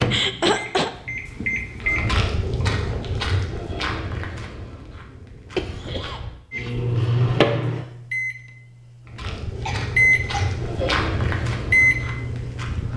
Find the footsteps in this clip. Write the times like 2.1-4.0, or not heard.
1.8-6.3, 9.1-12.9.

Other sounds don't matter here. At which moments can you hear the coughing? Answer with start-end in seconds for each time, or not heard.
0.1-0.9, 5.5-6.2, 9.7-10.9.